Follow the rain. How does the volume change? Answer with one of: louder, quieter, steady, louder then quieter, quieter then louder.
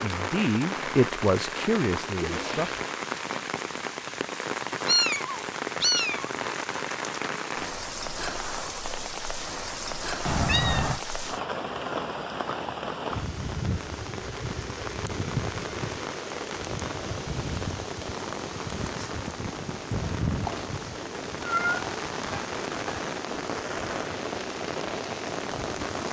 steady.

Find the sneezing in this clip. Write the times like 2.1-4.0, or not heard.
2.2-2.9.